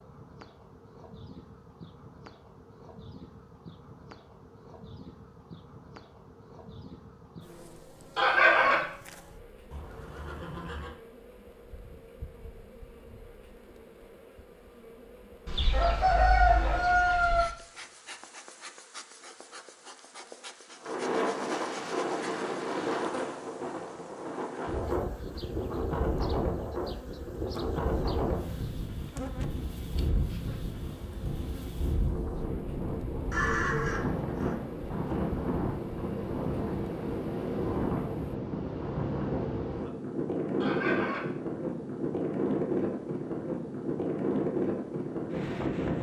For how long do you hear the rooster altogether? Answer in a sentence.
You can hear the rooster for 3 seconds altogether.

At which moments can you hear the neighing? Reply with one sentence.
The neighing can be heard from 9.7 to 10.9 s and from 33.3 to 34.5 s.